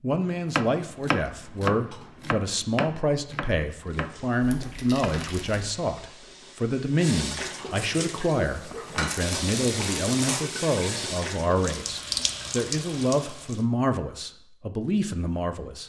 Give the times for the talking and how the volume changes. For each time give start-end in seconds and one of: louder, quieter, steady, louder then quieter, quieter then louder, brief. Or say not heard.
0.0-15.8 steady.